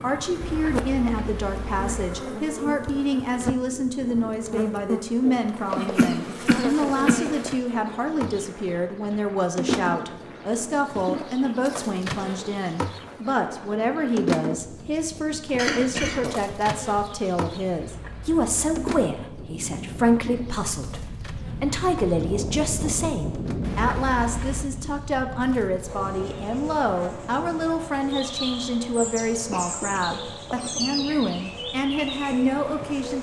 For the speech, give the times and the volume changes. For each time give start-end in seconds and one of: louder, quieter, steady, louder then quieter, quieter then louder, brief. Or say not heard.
0.0-33.1 steady.